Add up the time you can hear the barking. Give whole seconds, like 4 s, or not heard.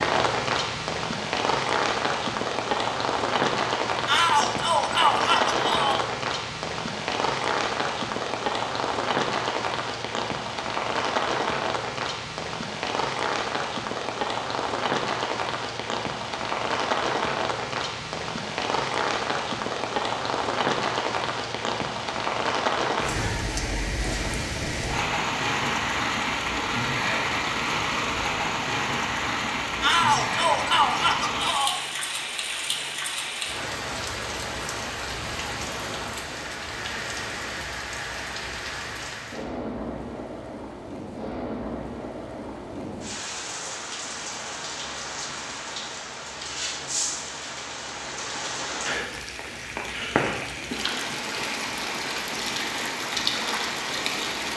not heard.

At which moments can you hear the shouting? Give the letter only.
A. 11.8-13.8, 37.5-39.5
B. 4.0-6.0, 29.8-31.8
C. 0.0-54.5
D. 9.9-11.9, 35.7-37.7
B.